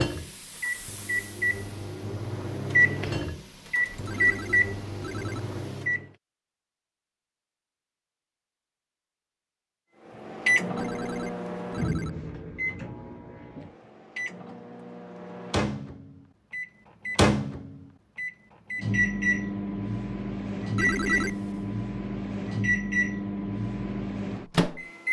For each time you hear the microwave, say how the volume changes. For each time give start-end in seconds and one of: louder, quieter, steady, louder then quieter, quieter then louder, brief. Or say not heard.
0.0-6.0 louder then quieter
10.1-25.0 quieter then louder.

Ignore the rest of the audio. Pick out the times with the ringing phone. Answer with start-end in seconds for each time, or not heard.
4.0-5.4, 10.8-12.1, 20.8-21.6.